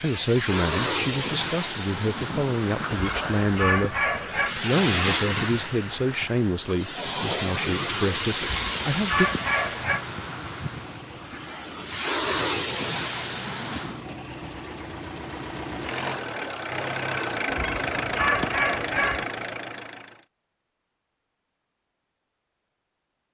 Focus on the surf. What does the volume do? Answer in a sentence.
The volume of the surf stays about the same.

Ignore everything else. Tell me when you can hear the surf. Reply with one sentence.
The surf can be heard from 0.0 to 14.1 s.